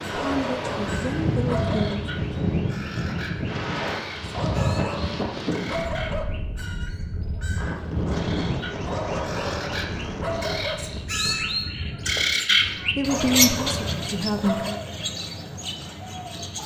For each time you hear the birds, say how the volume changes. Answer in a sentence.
The birds can be heard from 0.0 to 16.6 s, getting louder.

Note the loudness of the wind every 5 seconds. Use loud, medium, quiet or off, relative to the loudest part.
loud, loud, medium, off.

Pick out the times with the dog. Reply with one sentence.
The dog can be heard from 0.1 to 1.9 s, from 4.3 to 6.2 s, from 8.8 to 10.8 s and from 13.1 to 14.9 s.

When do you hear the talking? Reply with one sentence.
You can hear the talking from 0.1 to 2.0 s and from 12.5 to 14.8 s.